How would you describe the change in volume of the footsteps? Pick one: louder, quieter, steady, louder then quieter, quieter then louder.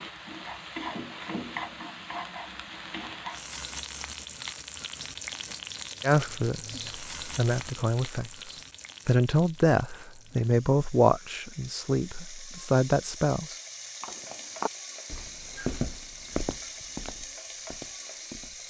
quieter.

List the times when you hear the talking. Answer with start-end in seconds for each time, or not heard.
6.0-13.6.